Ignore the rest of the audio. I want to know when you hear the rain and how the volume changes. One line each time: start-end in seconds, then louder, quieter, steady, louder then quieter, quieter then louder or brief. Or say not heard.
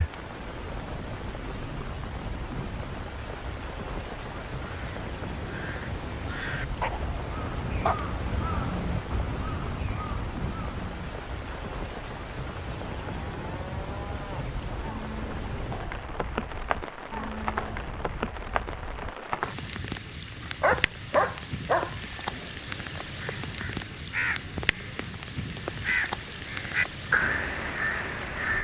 0.0-28.5 steady.